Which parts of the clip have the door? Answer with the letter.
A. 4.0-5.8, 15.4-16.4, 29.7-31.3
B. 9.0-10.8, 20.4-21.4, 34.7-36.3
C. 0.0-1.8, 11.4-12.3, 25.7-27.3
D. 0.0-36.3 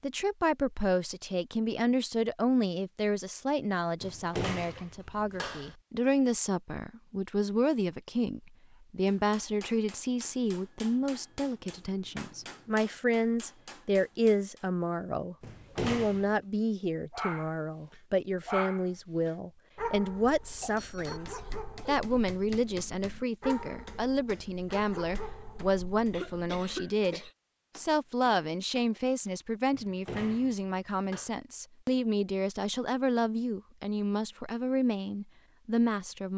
A.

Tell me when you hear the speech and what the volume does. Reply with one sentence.
You can hear the speech from 0.0 to 36.3 s, at a steady volume.